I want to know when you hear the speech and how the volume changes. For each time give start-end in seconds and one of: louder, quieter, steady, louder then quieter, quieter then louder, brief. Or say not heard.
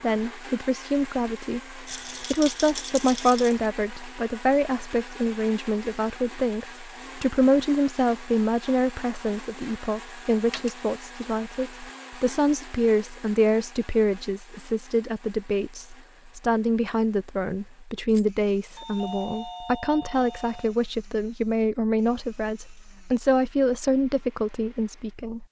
0.0-25.4 steady.